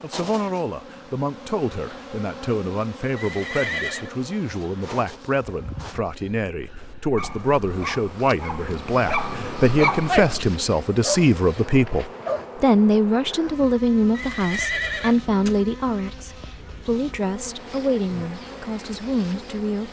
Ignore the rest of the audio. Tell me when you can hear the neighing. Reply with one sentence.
You can hear the neighing from 3.1 to 4.1 s and from 14.1 to 15.6 s.